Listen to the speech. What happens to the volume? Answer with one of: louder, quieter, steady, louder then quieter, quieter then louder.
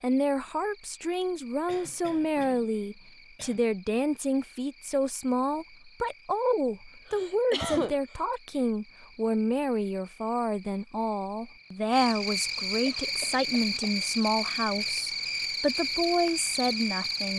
steady.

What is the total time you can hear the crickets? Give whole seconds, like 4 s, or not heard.
17 s.